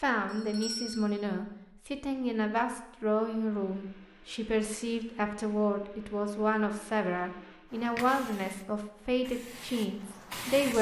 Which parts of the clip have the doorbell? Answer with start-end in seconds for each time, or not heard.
0.2-1.1.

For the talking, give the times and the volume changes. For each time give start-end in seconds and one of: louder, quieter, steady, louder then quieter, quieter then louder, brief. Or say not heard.
0.0-10.7 steady.